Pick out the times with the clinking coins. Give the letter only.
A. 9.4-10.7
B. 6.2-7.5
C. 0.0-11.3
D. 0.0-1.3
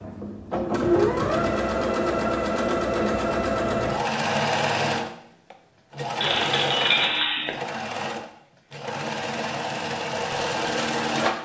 B.